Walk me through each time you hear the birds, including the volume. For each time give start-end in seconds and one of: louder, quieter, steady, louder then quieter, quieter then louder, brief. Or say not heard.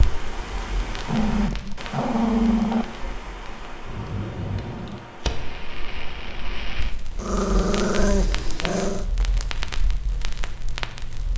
not heard.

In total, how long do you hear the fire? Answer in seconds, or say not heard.
11 s.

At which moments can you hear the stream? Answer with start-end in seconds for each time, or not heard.
0.0-6.7.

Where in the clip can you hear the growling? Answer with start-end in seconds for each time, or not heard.
1.1-2.9, 7.2-9.1.